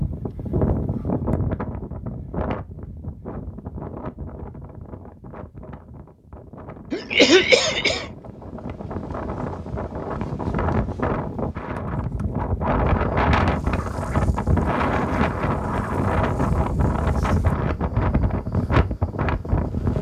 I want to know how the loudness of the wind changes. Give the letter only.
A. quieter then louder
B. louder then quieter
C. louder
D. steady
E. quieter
A.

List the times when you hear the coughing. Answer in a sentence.
You can hear the coughing from 6.9 to 8.1 s.